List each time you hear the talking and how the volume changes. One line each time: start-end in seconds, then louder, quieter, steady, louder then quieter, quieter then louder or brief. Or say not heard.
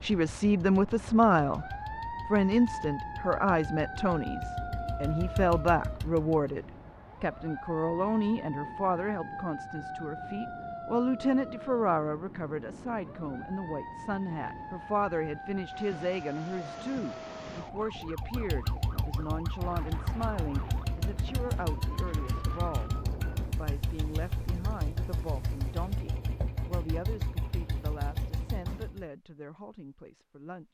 0.0-1.6 brief
2.2-30.6 quieter.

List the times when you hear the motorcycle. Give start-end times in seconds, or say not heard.
0.0-6.5, 18.0-29.1.